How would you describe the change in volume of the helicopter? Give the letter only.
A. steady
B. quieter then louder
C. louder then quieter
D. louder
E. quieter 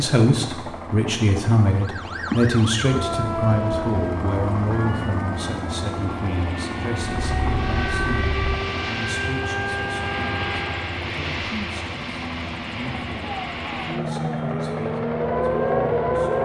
D.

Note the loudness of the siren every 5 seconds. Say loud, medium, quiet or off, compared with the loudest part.
medium, medium, medium, loud.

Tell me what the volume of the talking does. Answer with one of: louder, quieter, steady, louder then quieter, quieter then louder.
quieter.